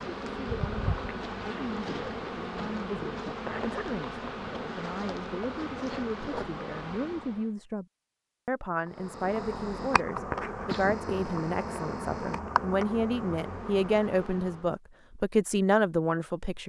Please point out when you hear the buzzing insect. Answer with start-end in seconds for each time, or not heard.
0.0-7.5, 8.8-14.8.